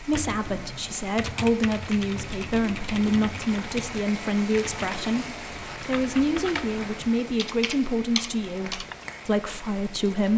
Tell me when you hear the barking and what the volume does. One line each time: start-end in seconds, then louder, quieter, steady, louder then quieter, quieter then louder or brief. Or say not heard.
not heard.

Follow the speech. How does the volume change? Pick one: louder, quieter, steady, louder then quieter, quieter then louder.
steady.